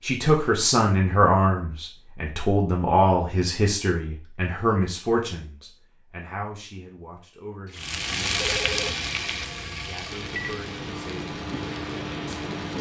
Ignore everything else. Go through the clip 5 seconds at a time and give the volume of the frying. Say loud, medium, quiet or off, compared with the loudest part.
off, loud, medium.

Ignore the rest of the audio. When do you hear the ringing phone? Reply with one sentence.
You can hear the ringing phone from 8.3 to 9.1 s.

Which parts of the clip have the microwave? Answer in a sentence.
The microwave can be heard from 10.1 to 12.7 s.